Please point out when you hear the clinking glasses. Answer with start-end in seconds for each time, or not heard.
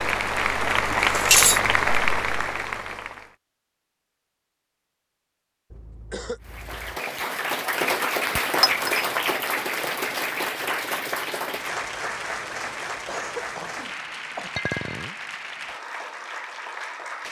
1.1-1.6, 8.6-9.1, 14.6-15.2.